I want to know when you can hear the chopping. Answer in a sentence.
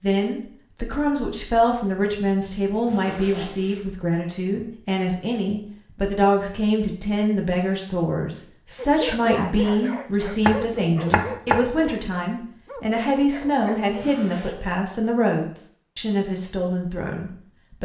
You can hear the chopping from 10.1 to 11.7 s.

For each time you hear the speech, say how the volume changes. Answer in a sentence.
The speech can be heard from 0.0 to 17.8 s, at a steady volume.